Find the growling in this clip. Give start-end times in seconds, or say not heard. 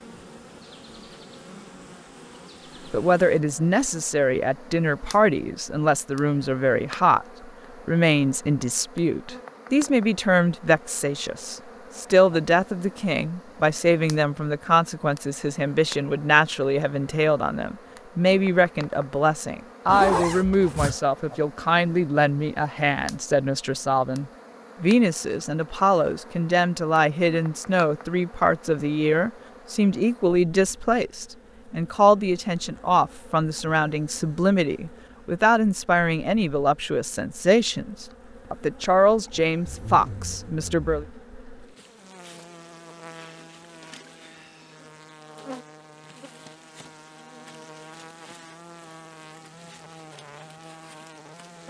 not heard.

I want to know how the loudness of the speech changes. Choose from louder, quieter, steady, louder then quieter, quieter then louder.
steady.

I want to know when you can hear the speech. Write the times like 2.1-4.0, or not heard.
2.9-7.2, 7.8-41.0.